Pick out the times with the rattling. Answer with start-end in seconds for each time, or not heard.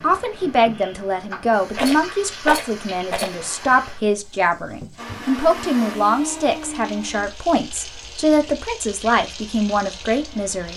1.8-3.4.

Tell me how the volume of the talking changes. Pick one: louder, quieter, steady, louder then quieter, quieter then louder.
steady.